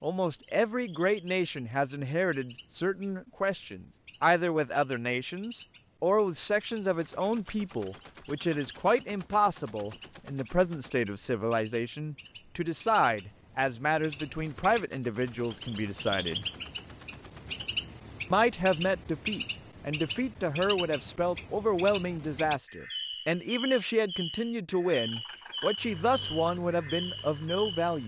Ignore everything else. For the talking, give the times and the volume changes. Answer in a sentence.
The talking can be heard from 0.0 to 16.4 s, at a steady volume; and from 18.3 to 28.0 s, at a steady volume.